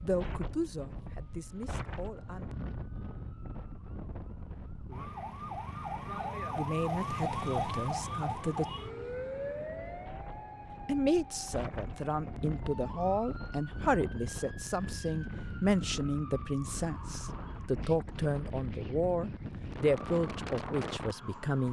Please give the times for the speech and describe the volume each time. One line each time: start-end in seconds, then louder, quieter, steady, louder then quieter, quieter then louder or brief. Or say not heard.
0.0-2.5 brief
6.5-8.7 brief
10.8-21.6 steady.